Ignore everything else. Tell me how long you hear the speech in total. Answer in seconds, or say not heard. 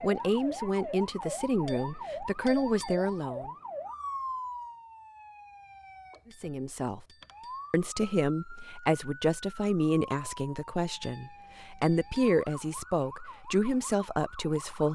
11 s.